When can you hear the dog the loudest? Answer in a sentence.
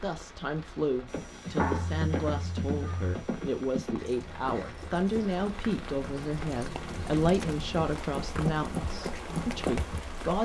The loudest moment of the dog is at 2 seconds.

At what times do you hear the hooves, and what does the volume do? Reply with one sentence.
You can hear the hooves from 1.1 to 10.0 s, getting quieter then louder.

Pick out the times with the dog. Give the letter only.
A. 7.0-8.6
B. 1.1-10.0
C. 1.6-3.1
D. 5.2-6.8
C.